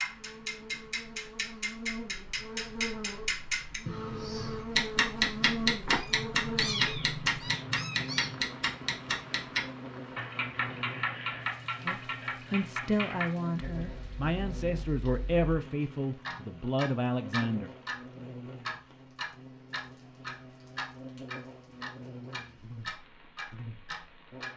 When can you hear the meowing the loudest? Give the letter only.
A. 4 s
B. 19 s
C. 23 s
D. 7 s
D.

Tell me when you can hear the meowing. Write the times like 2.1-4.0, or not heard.
5.8-8.4.